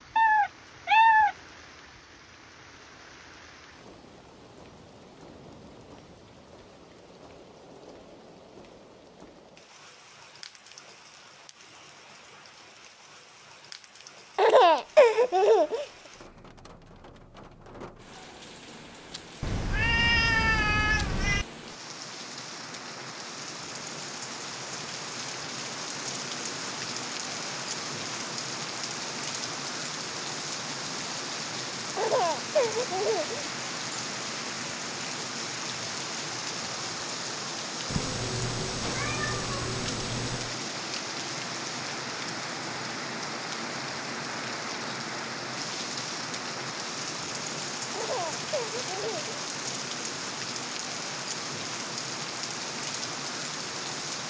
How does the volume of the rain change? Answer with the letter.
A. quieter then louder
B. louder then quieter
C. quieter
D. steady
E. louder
E.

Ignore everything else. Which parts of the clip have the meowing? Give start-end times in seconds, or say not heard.
0.1-1.4, 19.4-21.4, 37.9-40.5.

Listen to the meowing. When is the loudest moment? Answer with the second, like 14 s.
1 s.